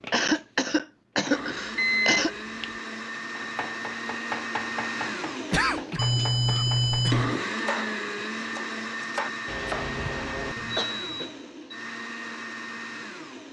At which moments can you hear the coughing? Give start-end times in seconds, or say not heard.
0.1-2.4, 5.5-7.2, 9.4-11.3.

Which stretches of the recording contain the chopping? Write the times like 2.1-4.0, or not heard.
3.4-9.9.